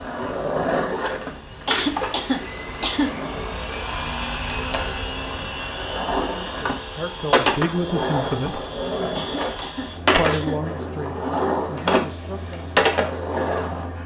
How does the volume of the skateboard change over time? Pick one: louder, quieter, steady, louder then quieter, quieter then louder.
quieter then louder.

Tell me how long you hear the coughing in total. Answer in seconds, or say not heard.
3 s.